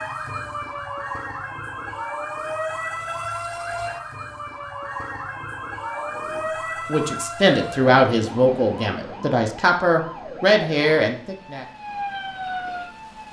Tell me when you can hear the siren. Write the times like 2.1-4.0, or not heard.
0.0-13.2.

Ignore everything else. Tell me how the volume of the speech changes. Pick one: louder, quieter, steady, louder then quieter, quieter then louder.
quieter then louder.